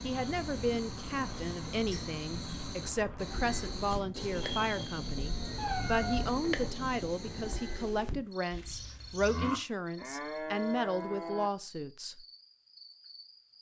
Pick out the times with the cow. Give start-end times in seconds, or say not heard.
3.3-11.5.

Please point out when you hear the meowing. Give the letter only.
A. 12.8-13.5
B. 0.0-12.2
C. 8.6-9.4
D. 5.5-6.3
D.